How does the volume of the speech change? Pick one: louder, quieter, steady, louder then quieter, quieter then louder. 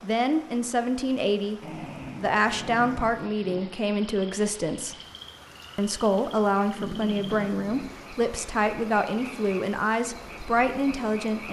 steady.